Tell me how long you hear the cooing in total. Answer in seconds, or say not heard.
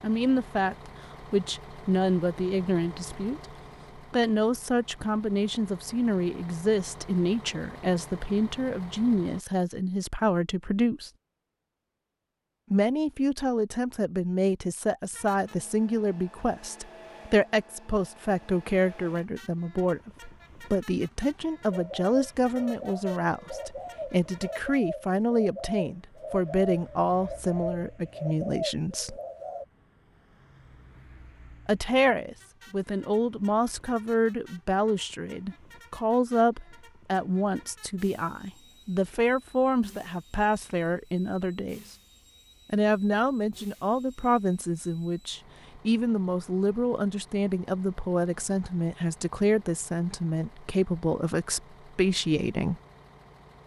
8 s.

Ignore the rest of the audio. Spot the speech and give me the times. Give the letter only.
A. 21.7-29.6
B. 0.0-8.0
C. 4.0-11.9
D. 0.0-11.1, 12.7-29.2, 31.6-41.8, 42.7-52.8
D.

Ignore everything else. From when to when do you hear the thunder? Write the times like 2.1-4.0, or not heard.
not heard.